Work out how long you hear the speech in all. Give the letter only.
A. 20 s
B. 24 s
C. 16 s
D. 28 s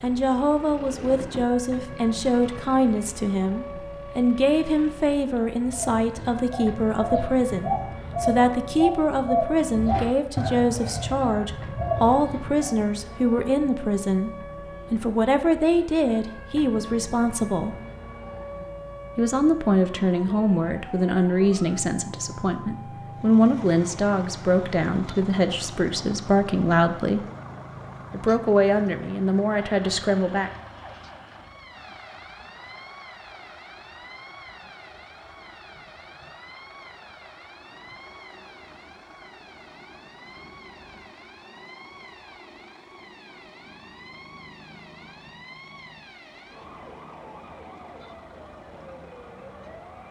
D.